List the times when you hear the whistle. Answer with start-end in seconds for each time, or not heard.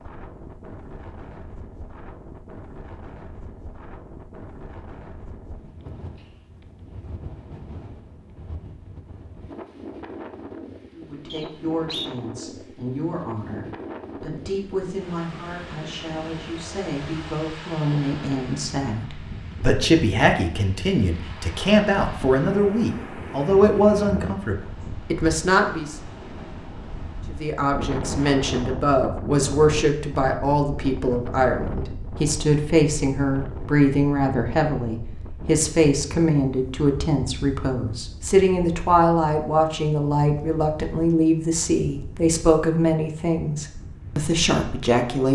11.3-12.1.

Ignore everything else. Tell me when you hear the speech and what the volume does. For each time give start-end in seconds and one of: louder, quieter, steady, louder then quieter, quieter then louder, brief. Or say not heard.
10.9-25.9 louder
27.3-45.2 steady.